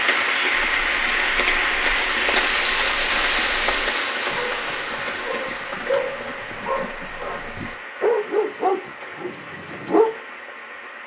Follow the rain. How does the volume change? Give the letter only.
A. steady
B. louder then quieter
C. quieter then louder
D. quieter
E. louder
D.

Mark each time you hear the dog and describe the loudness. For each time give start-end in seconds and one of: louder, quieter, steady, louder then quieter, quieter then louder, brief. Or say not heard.
0.7-10.2 louder.